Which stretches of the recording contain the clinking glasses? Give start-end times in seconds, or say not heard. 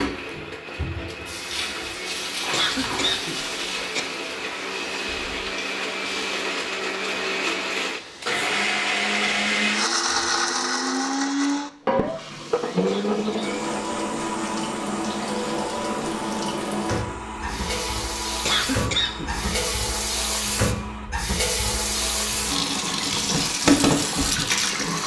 not heard.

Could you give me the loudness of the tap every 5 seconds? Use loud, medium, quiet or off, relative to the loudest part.
medium, quiet, medium, medium, loud.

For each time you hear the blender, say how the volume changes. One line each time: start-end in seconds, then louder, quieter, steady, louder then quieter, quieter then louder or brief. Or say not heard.
0.0-25.0 louder then quieter.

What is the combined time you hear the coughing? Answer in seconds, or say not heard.
3 s.